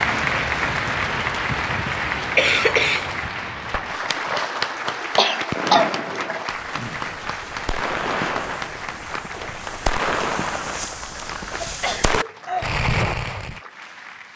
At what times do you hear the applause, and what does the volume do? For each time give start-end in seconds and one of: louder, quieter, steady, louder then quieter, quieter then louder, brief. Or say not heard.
0.0-14.3 quieter.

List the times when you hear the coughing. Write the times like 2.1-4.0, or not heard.
1.4-3.3, 5.2-6.4, 11.6-12.8.